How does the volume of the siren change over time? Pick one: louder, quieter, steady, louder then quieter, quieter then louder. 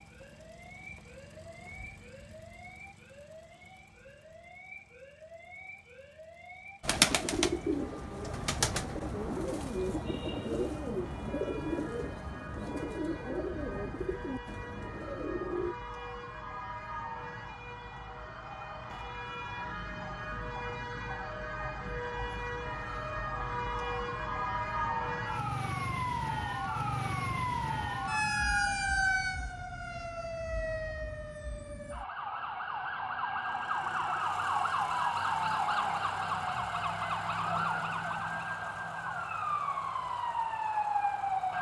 louder.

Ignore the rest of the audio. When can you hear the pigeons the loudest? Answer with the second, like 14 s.
7 s.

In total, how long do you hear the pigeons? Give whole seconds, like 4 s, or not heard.
9 s.